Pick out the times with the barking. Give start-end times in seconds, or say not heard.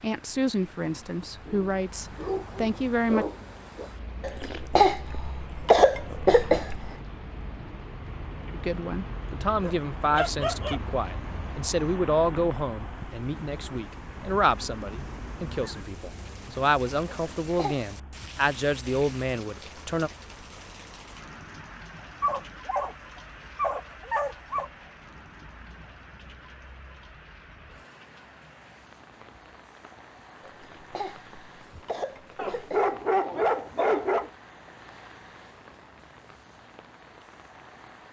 1.4-3.9, 9.6-10.8, 22.2-22.9, 23.6-24.7, 32.4-34.3.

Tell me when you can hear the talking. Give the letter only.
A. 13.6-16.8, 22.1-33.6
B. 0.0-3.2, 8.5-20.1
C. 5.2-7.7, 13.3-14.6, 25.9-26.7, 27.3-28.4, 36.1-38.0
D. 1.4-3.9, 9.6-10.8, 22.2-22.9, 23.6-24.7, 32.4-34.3
B.